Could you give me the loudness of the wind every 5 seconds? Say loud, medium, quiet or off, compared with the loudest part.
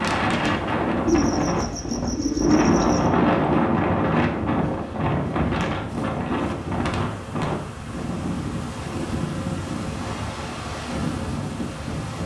loud, medium, medium.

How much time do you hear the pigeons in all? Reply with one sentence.
You can hear the pigeons for 2 seconds altogether.